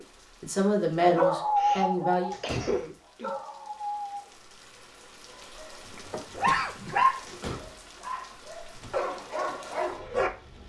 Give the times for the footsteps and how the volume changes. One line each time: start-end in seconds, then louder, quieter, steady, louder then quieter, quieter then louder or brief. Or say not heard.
not heard.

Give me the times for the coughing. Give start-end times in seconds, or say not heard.
1.6-3.4, 6.5-7.6.